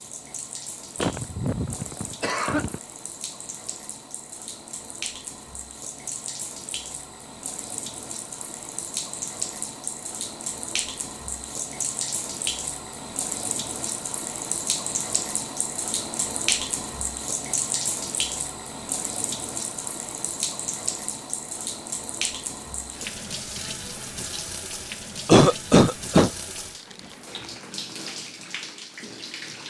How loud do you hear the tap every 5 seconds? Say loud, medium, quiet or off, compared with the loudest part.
medium, medium, loud, loud, loud, medium.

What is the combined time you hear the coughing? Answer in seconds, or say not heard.
3 s.